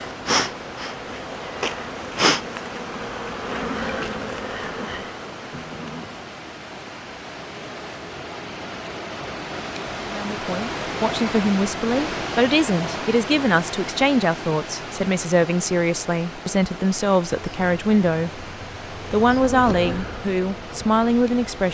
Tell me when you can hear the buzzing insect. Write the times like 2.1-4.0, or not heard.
0.0-5.8, 17.3-21.7.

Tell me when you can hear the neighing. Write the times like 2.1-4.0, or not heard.
5.5-6.2.